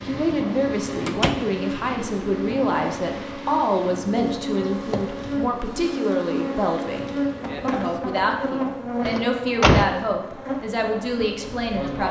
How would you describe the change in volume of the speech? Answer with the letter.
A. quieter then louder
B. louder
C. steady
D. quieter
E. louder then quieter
C.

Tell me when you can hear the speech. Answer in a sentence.
The speech can be heard from 0.0 to 12.0 s.